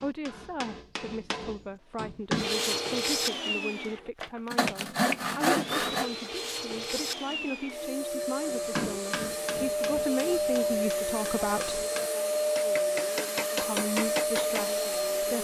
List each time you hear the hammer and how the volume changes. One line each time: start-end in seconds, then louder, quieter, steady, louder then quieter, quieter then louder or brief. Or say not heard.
0.0-2.5 brief
8.5-14.7 quieter then louder.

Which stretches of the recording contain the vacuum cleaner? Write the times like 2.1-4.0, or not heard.
2.3-15.3.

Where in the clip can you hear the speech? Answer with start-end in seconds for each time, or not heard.
0.0-11.8, 13.6-15.3.